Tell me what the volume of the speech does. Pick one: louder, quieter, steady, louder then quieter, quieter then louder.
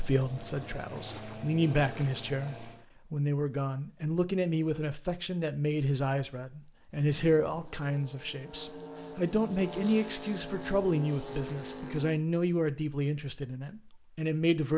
steady.